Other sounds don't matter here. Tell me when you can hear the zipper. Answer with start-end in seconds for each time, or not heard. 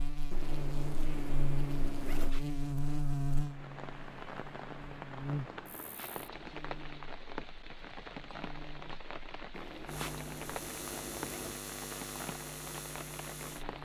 0.3-2.3, 5.3-7.0, 9.5-11.6.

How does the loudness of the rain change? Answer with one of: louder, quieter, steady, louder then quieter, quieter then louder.
steady.